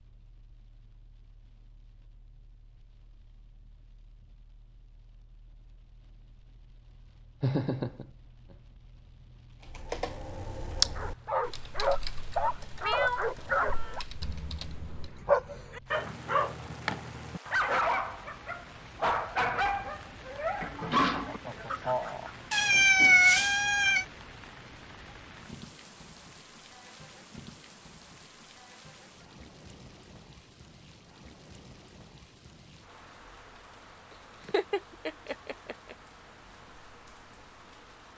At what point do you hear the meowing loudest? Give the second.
23 s.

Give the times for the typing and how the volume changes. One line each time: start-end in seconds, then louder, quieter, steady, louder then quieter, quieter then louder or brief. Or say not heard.
9.6-15.2 quieter then louder.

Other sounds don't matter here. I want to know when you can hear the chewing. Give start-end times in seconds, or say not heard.
not heard.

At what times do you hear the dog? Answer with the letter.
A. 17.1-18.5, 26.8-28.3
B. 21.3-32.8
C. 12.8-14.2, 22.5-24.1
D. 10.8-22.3
D.